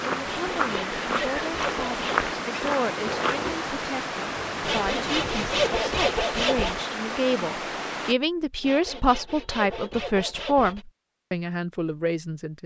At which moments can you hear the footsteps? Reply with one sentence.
You can hear the footsteps from 0.0 to 3.4 s.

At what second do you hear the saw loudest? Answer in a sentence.
The volume of the saw peaks at 6 seconds.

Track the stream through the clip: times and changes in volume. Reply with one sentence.
The stream can be heard from 0.0 to 8.2 s, at a steady volume.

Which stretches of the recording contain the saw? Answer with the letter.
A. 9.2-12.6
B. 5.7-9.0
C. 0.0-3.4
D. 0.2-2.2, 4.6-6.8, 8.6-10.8
D.